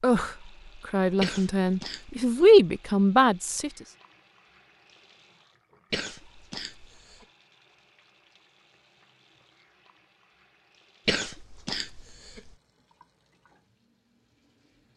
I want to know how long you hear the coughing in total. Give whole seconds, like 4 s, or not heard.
4 s.